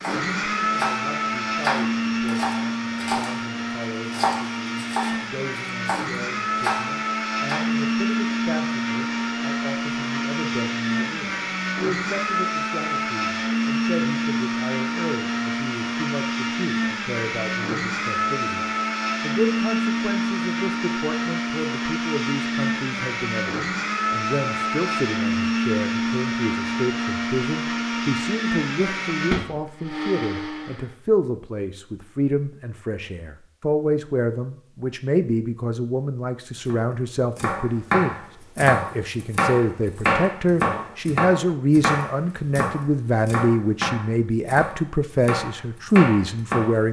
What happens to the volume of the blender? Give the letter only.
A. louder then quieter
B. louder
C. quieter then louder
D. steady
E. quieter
D.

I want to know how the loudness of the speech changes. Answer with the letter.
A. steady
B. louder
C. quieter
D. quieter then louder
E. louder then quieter
B.